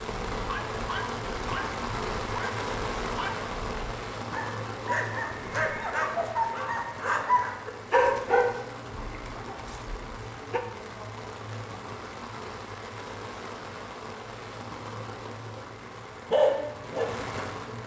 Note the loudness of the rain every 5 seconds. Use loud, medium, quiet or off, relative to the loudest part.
loud, medium, medium, medium.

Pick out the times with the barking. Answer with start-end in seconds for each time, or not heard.
0.2-10.6, 16.3-17.8.